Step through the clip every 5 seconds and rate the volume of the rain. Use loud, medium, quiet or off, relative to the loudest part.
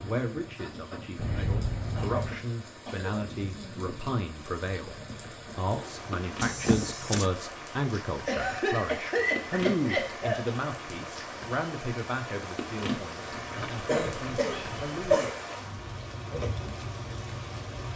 medium, loud, loud, loud.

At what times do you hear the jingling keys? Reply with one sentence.
The jingling keys can be heard from 1.1 to 2.5 s, from 6.4 to 7.3 s and from 13.3 to 15.0 s.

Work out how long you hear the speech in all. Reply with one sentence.
You can hear the speech for 15 seconds altogether.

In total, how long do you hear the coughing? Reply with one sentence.
The coughing can be heard for 5 seconds in total.